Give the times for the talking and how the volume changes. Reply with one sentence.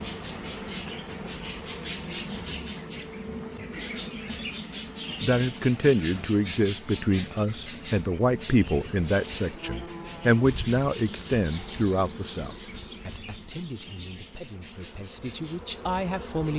You can hear the talking from 5.2 to 16.5 s, getting quieter.